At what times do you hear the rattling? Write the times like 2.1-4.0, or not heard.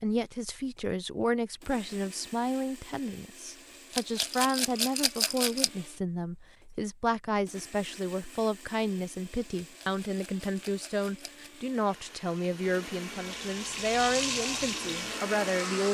3.9-5.7, 9.6-11.4.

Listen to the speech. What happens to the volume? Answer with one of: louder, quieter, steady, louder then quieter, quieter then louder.
steady.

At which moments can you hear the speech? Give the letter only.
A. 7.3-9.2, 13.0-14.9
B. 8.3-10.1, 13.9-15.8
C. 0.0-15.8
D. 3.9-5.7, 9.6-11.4
C.